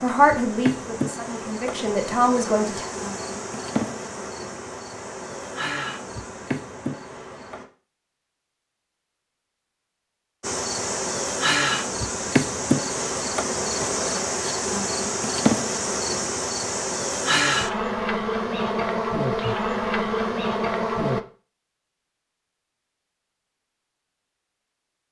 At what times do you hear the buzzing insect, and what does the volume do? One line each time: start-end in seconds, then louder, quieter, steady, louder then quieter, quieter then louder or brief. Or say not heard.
0.0-7.7 steady
10.4-21.2 steady.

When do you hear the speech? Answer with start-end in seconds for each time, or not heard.
0.0-2.9.